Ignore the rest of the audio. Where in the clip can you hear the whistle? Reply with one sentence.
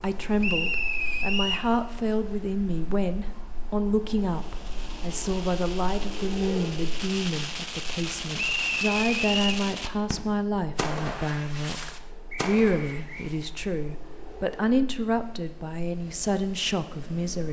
You can hear the whistle from 0.4 to 1.7 s, from 8.3 to 9.7 s and from 12.3 to 13.3 s.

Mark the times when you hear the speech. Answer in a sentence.
You can hear the speech from 0.0 to 17.4 s.